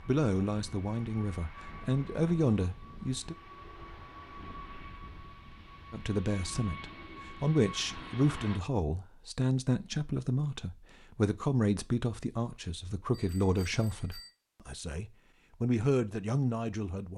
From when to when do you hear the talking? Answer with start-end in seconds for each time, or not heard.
0.1-3.4, 5.9-17.1.